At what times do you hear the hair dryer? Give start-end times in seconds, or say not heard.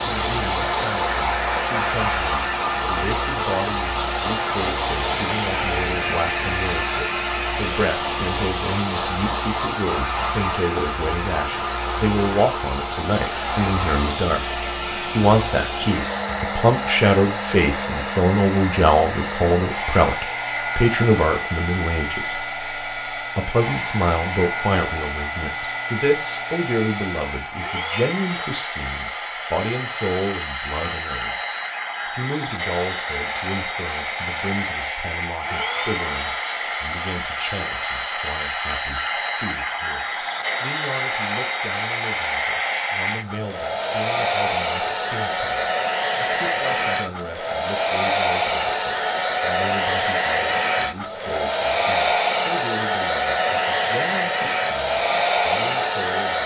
0.0-56.4.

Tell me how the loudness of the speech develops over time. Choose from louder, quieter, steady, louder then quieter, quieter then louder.
louder then quieter.